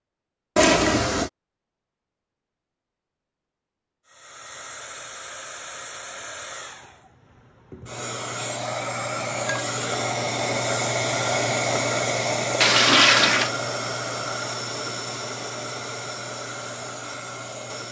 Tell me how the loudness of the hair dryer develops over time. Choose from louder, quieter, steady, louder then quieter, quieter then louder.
louder then quieter.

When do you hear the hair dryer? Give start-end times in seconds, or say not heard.
4.0-17.8.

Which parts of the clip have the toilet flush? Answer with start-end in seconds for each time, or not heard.
0.6-1.3, 12.6-13.5.